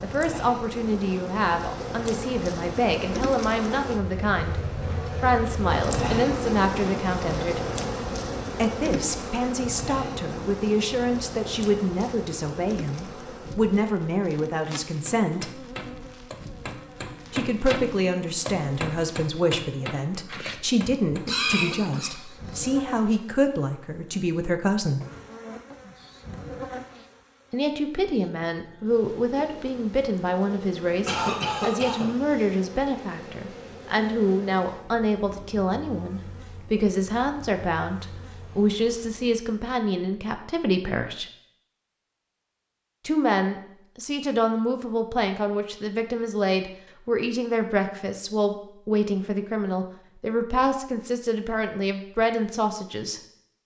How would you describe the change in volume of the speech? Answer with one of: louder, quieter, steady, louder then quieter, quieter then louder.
steady.